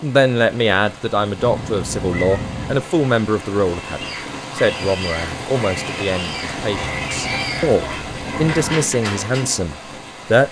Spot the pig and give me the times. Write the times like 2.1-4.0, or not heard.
3.8-9.7.